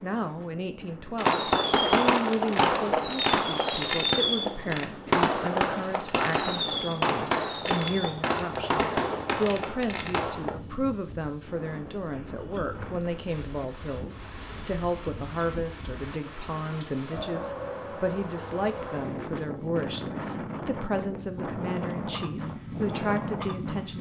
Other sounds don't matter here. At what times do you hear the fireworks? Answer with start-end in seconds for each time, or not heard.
1.1-10.6.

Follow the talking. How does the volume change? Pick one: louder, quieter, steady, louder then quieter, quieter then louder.
steady.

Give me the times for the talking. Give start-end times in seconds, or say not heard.
0.0-23.9.